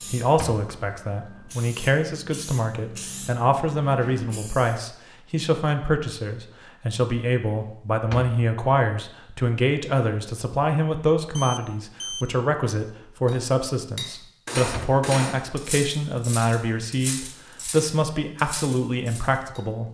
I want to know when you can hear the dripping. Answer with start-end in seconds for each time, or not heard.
not heard.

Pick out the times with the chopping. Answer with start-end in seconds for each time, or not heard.
not heard.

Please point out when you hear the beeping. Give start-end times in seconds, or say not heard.
11.3-12.3.